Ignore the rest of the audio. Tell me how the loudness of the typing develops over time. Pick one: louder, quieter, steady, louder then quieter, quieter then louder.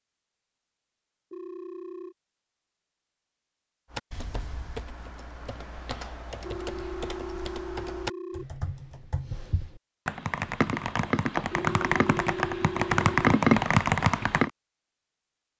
louder.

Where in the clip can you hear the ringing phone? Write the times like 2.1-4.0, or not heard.
1.3-2.1, 6.4-8.4, 11.5-13.2.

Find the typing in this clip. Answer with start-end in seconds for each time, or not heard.
3.9-14.5.